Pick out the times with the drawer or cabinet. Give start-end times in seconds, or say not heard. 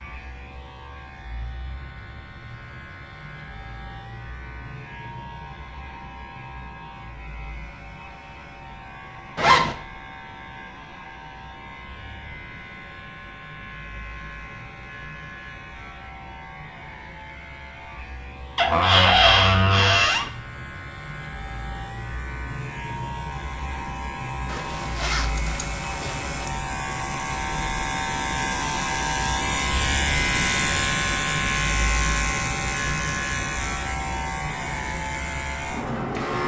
18.6-20.3.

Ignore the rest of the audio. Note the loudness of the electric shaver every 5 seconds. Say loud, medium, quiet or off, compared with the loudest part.
quiet, quiet, quiet, quiet, medium, loud, loud, loud.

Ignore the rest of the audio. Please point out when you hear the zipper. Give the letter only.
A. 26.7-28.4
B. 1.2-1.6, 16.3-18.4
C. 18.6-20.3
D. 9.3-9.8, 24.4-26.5
D.